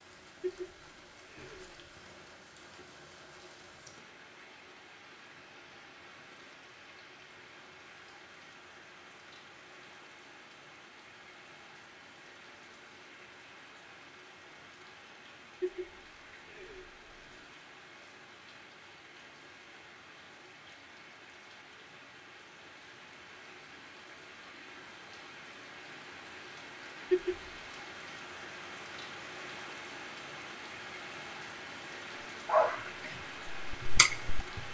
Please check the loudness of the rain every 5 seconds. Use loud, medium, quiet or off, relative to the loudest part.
medium, medium, medium, medium, medium, loud, loud.